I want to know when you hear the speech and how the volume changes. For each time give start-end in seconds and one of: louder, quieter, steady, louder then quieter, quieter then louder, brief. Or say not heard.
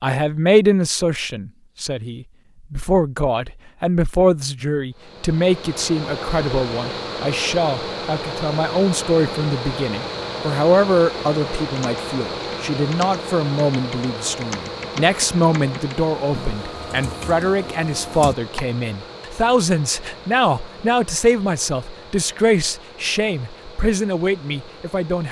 0.0-25.2 steady.